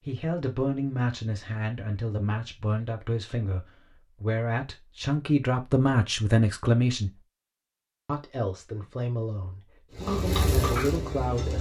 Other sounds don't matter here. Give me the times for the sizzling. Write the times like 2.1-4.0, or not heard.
9.9-11.5.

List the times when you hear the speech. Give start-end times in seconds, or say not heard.
0.1-7.2, 8.1-11.5.